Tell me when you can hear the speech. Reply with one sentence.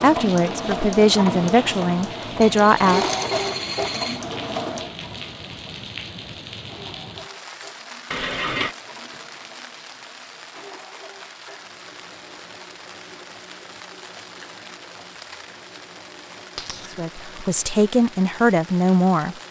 The speech can be heard from 0.0 to 3.0 s and from 16.9 to 19.4 s.